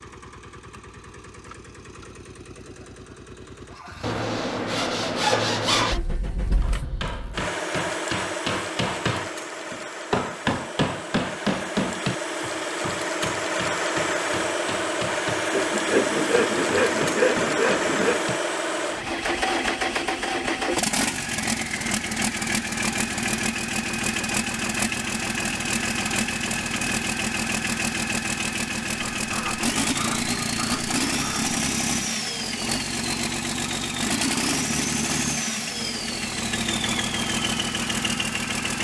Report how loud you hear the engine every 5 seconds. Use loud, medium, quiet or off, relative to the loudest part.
quiet, medium, loud, loud, loud, loud, loud, loud.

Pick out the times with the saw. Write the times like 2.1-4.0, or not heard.
4.0-6.0, 15.5-18.2, 29.1-31.6.